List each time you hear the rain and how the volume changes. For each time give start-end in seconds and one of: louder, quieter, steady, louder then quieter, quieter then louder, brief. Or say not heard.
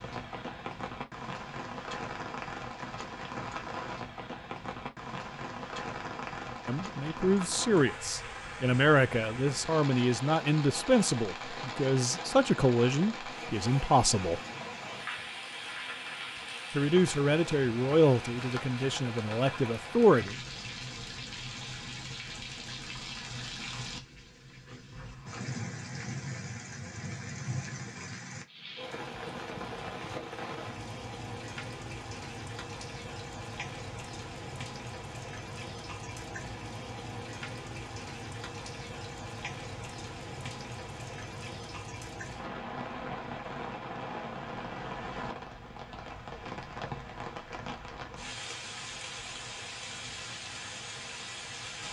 0.0-51.8 steady.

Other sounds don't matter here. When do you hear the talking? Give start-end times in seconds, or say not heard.
6.7-14.4, 16.7-20.4.